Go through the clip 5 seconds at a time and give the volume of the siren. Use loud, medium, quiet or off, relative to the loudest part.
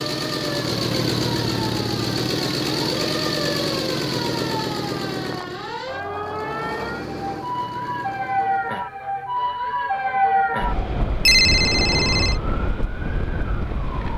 medium, loud, loud.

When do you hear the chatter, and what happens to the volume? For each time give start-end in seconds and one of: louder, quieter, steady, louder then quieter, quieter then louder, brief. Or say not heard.
not heard.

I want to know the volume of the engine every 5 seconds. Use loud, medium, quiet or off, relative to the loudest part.
loud, medium, off.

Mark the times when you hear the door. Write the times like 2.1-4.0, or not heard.
not heard.